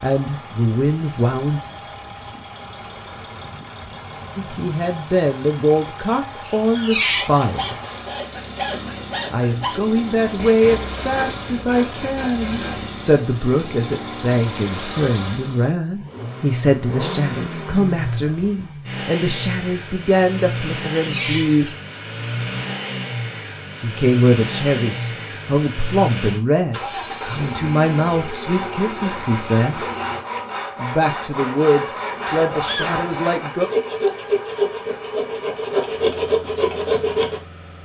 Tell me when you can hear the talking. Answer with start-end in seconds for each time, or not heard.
0.0-1.6, 4.3-7.8, 9.3-21.7, 23.8-29.9, 30.8-33.7.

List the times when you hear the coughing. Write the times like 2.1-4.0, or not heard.
not heard.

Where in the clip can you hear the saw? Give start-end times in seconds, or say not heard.
7.2-12.9, 28.4-37.4.